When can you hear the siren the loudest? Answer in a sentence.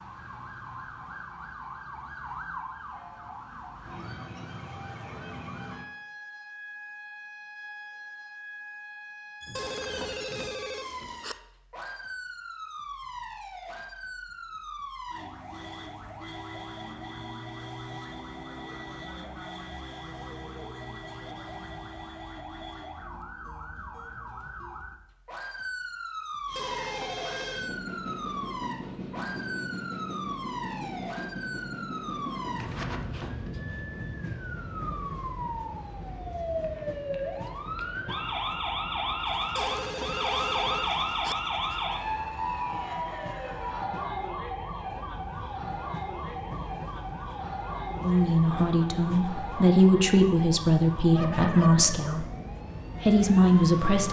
The loudest moment of the siren is at 41 seconds.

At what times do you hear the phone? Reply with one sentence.
You can hear the phone from 9.6 to 11.3 s, from 26.6 to 27.8 s and from 39.5 to 41.4 s.